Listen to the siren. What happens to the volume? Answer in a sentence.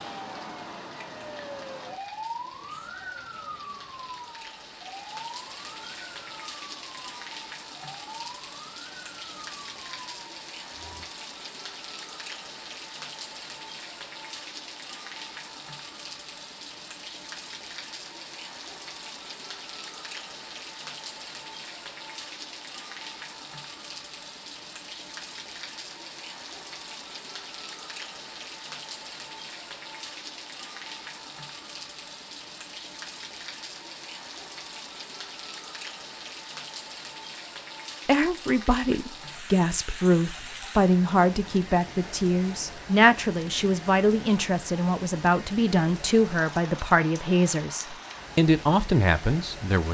The volume of the siren goes down.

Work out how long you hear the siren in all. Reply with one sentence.
The siren can be heard for 11 seconds in total.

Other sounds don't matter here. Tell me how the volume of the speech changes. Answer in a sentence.
The volume of the speech stays about the same.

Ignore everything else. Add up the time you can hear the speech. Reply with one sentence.
You can hear the speech for 12 seconds altogether.